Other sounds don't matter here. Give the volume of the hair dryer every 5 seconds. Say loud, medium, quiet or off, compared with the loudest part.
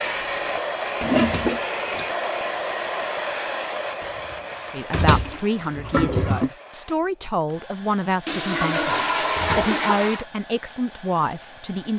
loud, quiet, quiet.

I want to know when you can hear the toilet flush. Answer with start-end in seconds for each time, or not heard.
1.0-1.6, 5.1-6.5, 8.2-10.2.